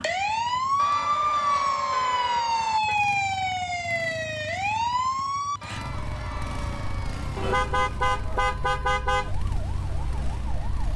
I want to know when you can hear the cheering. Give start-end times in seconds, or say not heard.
0.8-2.8, 5.6-7.5.